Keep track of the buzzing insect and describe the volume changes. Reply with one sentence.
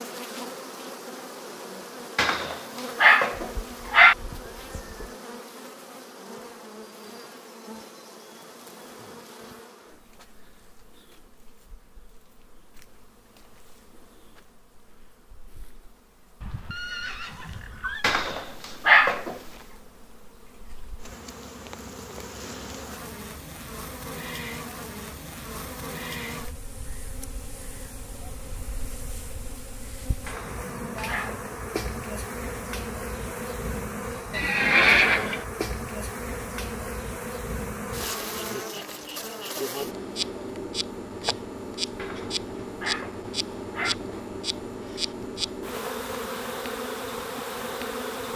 The loudness of the buzzing insect goes down, then up.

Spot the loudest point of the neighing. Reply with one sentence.
The volume of the neighing peaks at 35 seconds.